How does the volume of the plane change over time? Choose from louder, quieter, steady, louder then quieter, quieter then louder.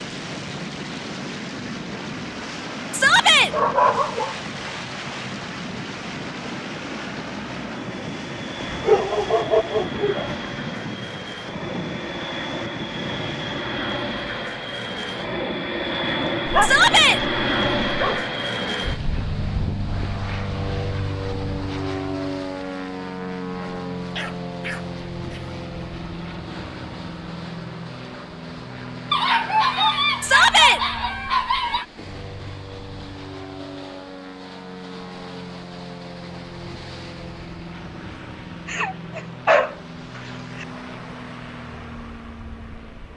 louder then quieter.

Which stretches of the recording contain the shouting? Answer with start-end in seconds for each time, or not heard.
2.9-3.5, 16.6-17.2, 30.2-30.8.